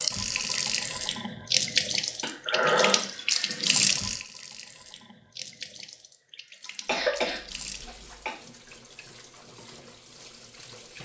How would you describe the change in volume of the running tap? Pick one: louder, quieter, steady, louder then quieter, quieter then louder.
quieter.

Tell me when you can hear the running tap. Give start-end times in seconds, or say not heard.
0.0-11.0.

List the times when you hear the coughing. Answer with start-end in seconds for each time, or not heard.
2.2-3.0, 6.8-8.3.